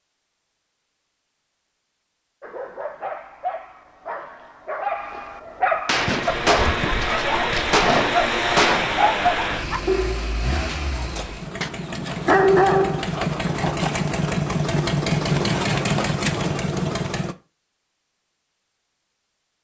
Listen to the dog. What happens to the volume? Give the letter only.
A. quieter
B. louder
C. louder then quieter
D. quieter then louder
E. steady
B.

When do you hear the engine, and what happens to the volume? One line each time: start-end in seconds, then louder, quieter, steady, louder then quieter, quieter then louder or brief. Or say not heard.
5.9-17.4 quieter then louder.